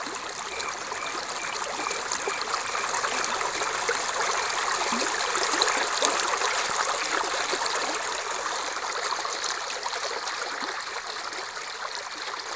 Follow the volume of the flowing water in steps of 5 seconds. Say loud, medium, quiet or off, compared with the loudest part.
loud, loud, medium.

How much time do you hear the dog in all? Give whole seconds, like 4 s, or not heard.
not heard.